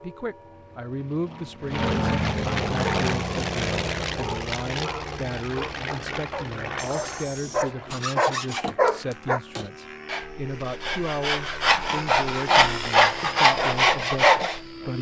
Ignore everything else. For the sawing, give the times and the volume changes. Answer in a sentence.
The sawing can be heard from 6.8 to 14.6 s, getting louder.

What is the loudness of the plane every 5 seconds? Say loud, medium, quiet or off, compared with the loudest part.
loud, medium, medium.